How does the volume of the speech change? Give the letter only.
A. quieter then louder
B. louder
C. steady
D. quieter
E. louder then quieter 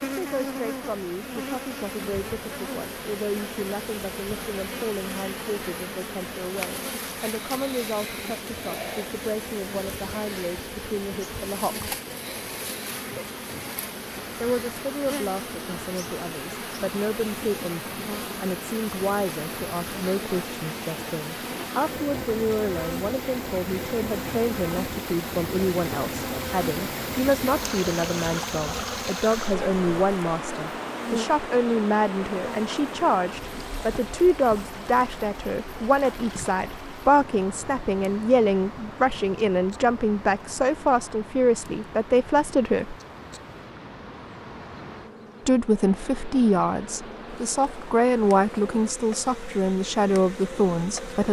B.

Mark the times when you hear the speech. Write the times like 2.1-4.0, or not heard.
0.0-11.9, 14.4-43.0, 45.5-51.2.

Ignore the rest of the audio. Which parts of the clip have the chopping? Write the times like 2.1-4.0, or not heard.
not heard.